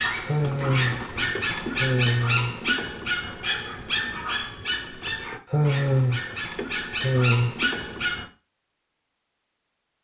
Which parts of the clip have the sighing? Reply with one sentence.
You can hear the sighing from 0.2 to 2.6 s and from 5.5 to 7.5 s.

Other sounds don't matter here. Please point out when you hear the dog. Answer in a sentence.
You can hear the dog from 0.0 to 8.3 s.